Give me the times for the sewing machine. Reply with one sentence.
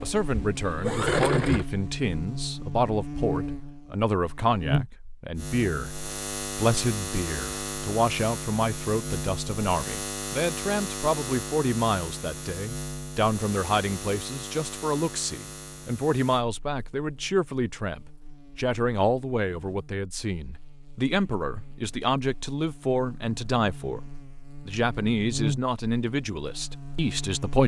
You can hear the sewing machine from 0.0 to 1.6 s.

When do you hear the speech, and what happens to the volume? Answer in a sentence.
You can hear the speech from 0.0 to 24.0 s, at a steady volume; and briefly from 24.6 to 27.6 s.